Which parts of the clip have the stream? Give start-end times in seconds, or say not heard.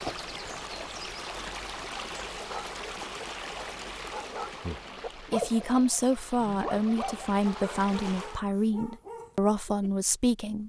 0.0-8.4.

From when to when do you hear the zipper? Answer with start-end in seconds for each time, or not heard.
not heard.